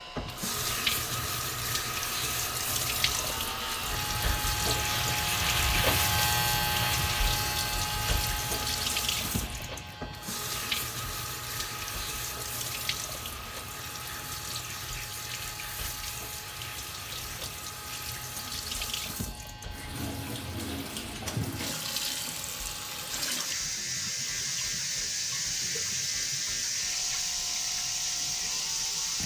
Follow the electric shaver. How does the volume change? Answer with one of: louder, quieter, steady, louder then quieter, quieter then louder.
quieter.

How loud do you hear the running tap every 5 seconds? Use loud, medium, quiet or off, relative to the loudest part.
loud, loud, medium, medium, loud, loud.